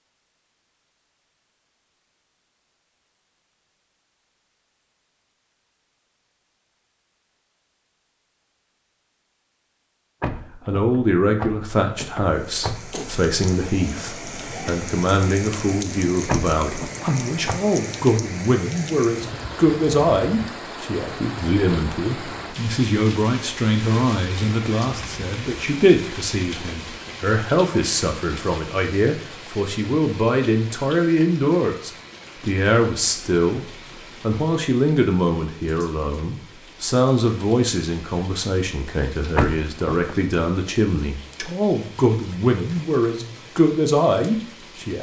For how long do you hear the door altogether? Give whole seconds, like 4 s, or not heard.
5 s.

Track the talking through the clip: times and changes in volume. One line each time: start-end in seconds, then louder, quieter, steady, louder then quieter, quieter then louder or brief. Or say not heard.
10.5-44.9 steady.